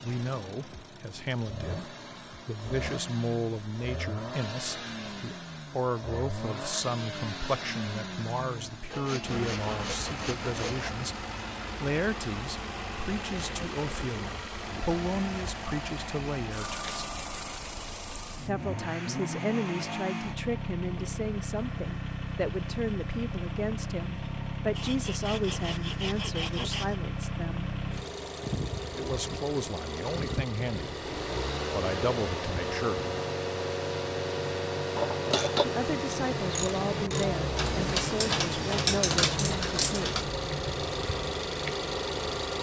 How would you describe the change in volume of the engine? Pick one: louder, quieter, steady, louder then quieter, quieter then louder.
louder.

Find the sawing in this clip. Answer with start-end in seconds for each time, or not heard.
8.9-10.9, 24.8-27.0.